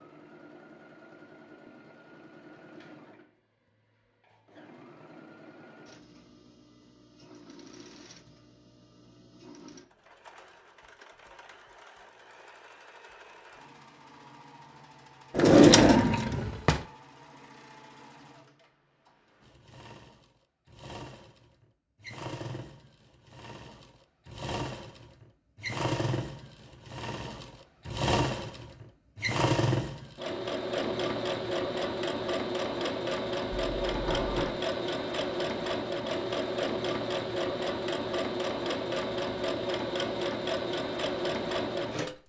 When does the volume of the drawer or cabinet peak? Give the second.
16 s.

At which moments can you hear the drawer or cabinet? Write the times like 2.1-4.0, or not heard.
15.3-16.8, 33.5-34.5.